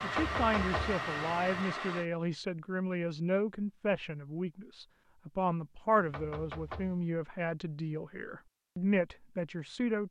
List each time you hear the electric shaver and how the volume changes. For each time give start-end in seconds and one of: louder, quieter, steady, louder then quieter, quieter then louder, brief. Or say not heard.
not heard.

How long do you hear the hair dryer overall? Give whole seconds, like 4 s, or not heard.
2 s.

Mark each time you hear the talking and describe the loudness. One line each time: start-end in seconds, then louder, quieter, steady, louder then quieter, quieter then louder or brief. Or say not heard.
0.0-10.0 steady.